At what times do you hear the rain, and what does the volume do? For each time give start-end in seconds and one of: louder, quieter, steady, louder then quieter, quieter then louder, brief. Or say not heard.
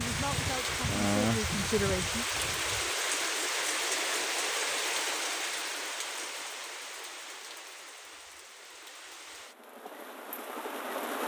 0.0-11.2 quieter.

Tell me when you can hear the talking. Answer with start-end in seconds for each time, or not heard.
0.0-2.2.